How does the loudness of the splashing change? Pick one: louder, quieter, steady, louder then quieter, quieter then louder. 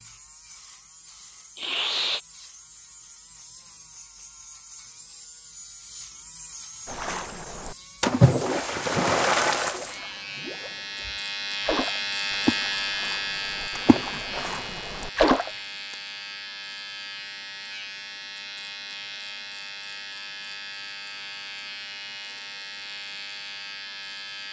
quieter then louder.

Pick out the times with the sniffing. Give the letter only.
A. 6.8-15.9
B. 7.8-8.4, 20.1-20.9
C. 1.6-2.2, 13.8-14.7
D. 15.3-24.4
C.